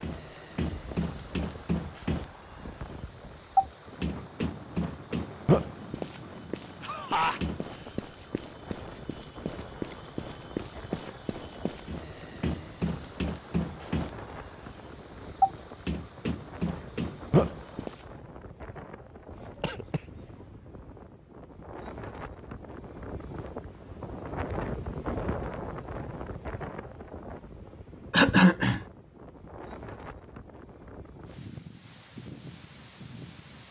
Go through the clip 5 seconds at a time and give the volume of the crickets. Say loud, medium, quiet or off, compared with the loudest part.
loud, loud, loud, loud, off, off, off.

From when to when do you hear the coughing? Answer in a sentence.
The coughing can be heard from 6.8 to 7.9 s, from 19.6 to 20.2 s and from 28.1 to 28.8 s.